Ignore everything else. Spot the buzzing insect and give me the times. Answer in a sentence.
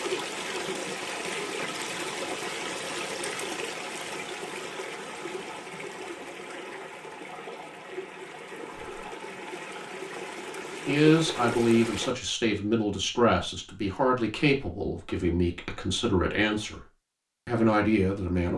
You can't hear the buzzing insect here.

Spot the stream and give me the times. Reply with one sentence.
The stream can be heard from 0.0 to 12.2 s.